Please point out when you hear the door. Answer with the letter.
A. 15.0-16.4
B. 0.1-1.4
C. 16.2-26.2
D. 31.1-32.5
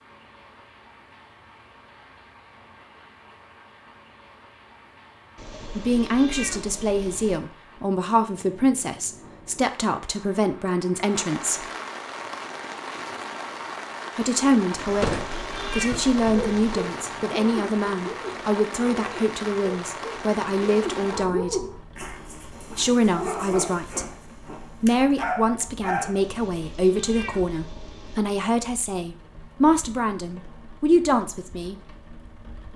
A.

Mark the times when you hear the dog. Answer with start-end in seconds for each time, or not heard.
16.2-26.2.